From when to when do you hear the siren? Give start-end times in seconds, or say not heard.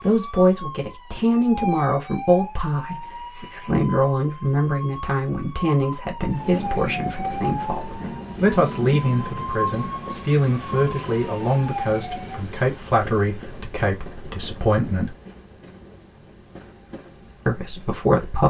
0.0-12.4.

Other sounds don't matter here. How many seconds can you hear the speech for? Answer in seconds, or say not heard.
16 s.